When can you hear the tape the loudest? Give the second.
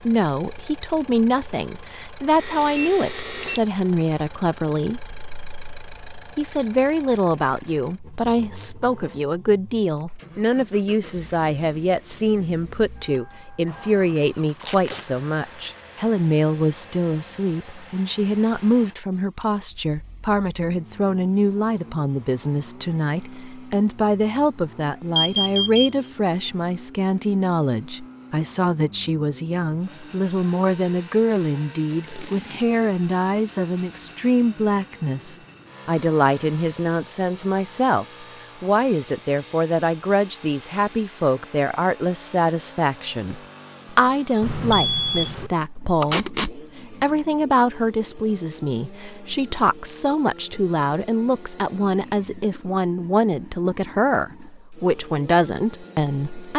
46 s.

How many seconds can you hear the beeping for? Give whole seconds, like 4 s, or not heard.
3 s.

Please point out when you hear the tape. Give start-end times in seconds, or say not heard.
14.6-15.1, 31.3-32.6, 46.0-46.5.